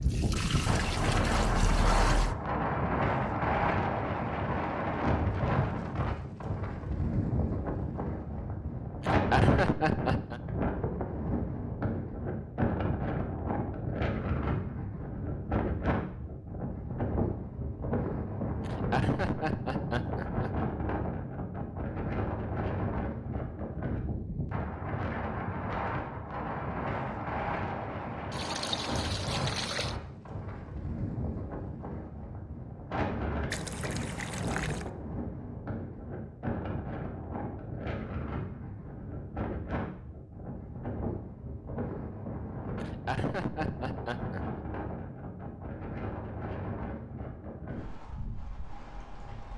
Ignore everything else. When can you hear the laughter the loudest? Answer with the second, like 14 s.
9 s.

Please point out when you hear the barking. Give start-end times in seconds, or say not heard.
not heard.